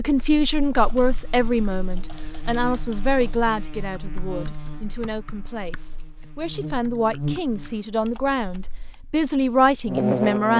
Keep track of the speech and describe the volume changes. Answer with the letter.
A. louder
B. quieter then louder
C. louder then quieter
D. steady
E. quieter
B.